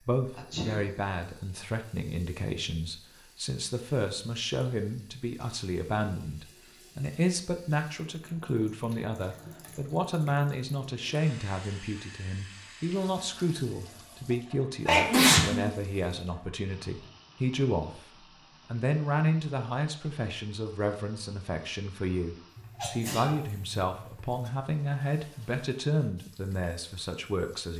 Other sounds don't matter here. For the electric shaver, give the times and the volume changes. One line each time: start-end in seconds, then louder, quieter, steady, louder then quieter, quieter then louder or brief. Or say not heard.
not heard.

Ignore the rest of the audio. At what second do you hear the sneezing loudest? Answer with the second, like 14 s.
15 s.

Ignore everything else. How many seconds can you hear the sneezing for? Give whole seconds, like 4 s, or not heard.
3 s.